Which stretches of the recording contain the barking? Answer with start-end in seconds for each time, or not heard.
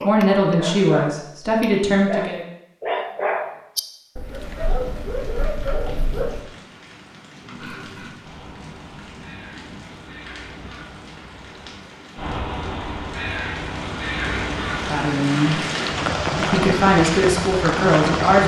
0.0-6.5.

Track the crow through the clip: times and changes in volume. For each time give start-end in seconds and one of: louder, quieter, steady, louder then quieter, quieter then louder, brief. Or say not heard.
7.5-15.1 louder.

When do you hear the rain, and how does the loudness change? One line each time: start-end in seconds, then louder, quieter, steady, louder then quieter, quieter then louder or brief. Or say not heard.
4.2-18.4 louder.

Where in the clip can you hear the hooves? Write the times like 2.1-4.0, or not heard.
not heard.